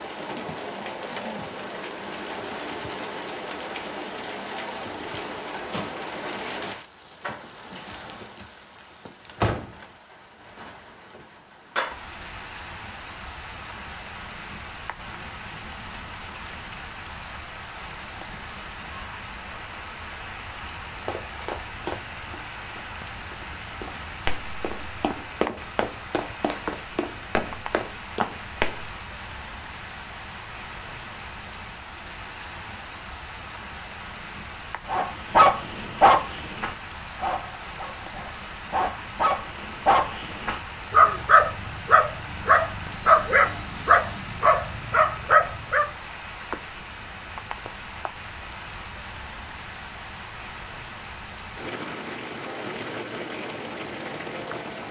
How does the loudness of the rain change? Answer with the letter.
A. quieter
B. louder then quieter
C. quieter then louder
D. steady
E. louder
D.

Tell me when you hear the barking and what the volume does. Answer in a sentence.
You can hear the barking from 34.9 to 45.9 s, getting quieter then louder.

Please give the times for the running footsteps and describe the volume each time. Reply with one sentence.
You can hear the running footsteps from 21.0 to 28.9 s, getting quieter then louder.